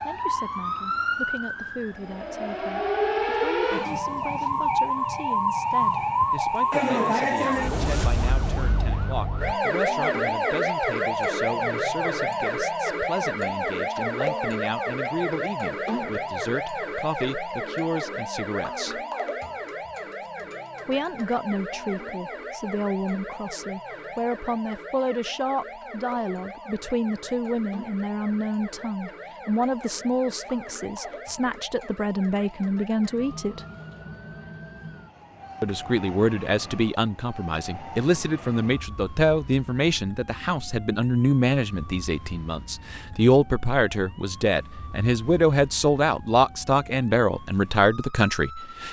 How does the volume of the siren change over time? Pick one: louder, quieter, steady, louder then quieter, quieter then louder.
quieter.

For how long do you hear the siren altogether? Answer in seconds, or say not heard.
49 s.